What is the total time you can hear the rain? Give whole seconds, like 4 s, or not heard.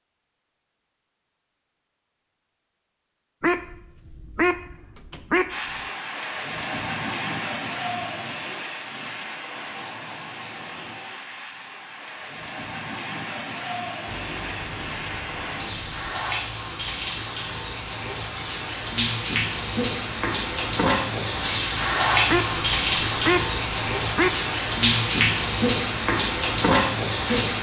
22 s.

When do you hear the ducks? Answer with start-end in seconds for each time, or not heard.
3.4-5.8, 22.2-24.4.